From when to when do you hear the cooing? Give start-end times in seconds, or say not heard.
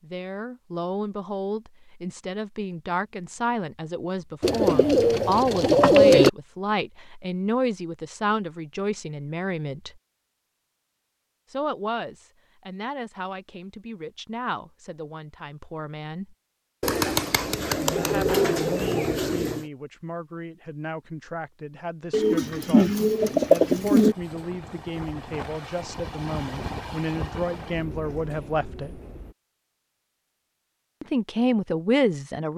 4.4-6.3, 16.8-19.6, 22.1-24.1.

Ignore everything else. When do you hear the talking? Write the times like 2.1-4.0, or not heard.
0.0-10.0, 11.5-16.4, 17.9-29.0, 31.0-32.5.